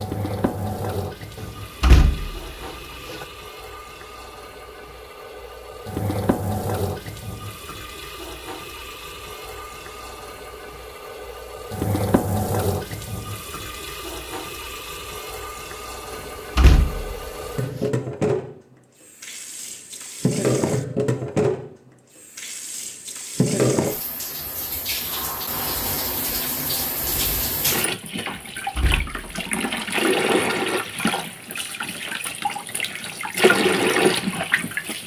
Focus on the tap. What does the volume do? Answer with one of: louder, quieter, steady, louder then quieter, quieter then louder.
louder.